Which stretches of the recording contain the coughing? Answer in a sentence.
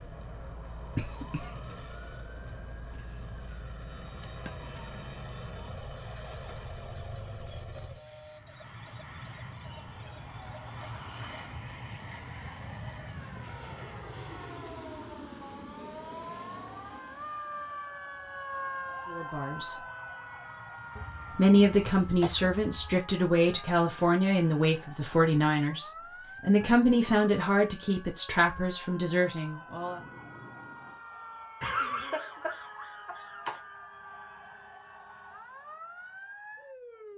You can hear the coughing from 0.9 to 1.7 s, from 20.9 to 22.9 s and from 31.6 to 33.6 s.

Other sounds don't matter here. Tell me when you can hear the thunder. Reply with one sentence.
The thunder can be heard from 29.6 to 31.0 s.